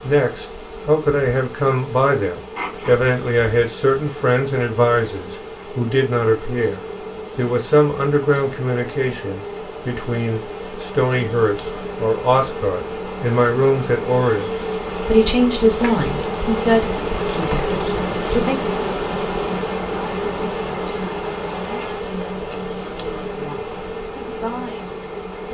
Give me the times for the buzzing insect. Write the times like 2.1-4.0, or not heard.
0.0-25.4.